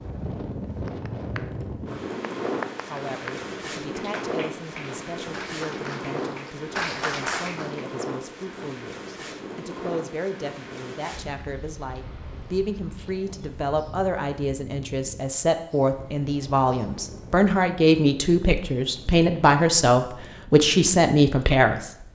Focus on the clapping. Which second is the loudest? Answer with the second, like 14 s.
7 s.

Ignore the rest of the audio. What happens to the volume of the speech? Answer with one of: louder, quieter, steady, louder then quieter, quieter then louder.
louder.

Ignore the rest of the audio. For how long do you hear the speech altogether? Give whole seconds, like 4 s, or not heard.
19 s.